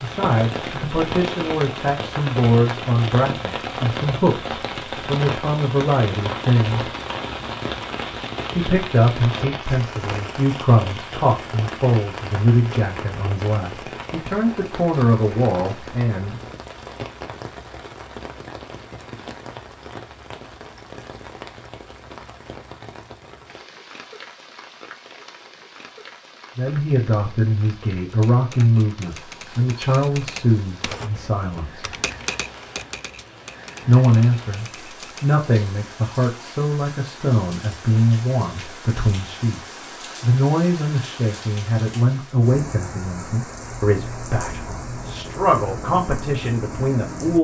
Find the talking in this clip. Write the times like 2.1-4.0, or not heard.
0.0-6.9, 8.6-16.4, 26.6-31.9, 33.9-47.3.